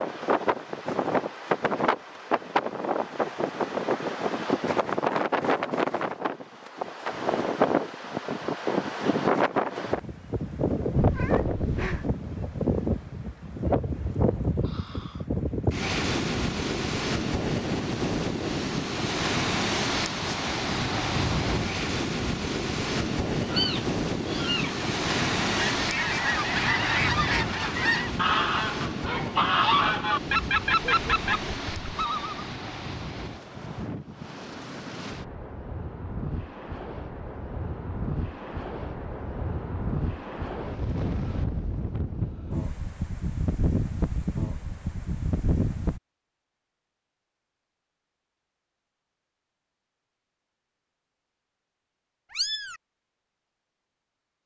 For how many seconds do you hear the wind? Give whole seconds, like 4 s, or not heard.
46 s.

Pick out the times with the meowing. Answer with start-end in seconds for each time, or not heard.
10.9-12.1, 23.4-25.2, 52.3-52.8.